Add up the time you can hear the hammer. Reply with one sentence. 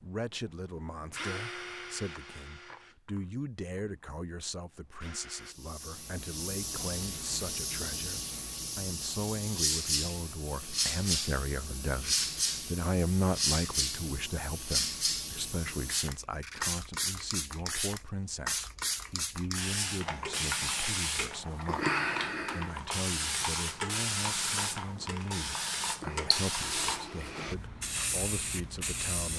You can't hear the hammer here.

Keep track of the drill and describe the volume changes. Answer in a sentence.
The loudness of the drill goes down, then up.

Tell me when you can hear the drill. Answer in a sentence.
You can hear the drill from 0.0 to 5.5 s.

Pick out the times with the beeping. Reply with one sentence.
The beeping can't be heard in this clip.